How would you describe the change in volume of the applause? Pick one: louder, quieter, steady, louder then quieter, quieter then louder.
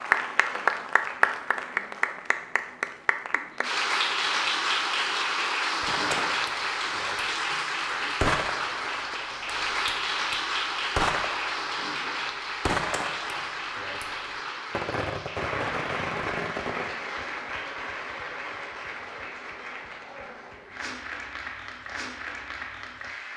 quieter.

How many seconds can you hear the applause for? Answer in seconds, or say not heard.
23 s.